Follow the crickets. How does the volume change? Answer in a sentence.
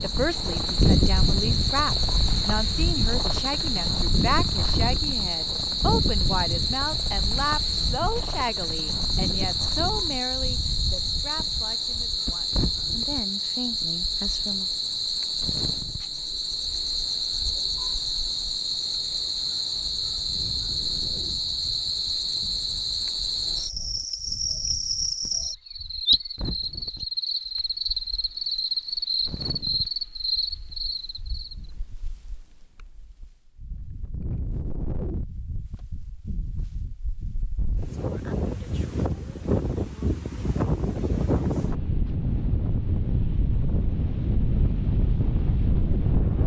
The loudness of the crickets stays about the same.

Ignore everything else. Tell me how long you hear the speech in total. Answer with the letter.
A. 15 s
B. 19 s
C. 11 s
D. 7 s
A.